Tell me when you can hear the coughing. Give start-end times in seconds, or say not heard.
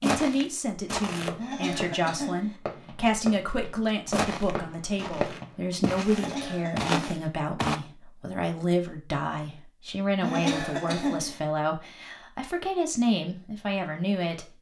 1.4-2.5, 6.1-7.2, 10.2-11.4.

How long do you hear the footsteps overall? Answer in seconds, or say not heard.
5 s.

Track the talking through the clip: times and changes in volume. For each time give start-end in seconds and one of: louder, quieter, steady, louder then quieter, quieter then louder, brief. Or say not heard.
0.0-14.5 steady.